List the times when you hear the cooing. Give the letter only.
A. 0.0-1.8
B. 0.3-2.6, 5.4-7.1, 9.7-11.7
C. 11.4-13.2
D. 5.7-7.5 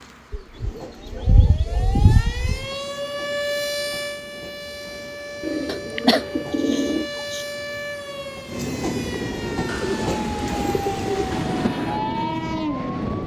B.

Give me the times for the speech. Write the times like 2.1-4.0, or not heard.
not heard.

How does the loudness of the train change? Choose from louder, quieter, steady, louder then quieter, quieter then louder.
louder.